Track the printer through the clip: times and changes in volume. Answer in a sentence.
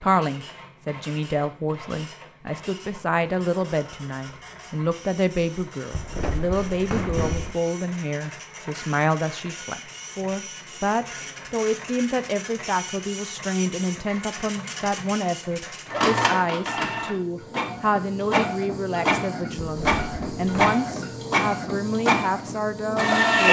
You can hear the printer from 0.0 to 23.4 s, getting louder.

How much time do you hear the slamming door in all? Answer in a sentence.
You can hear the slamming door for 3 seconds altogether.